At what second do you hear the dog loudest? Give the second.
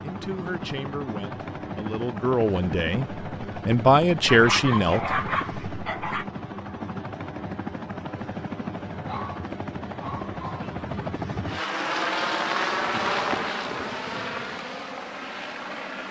5 s.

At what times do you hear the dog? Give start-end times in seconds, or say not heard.
4.2-6.2, 9.1-10.8.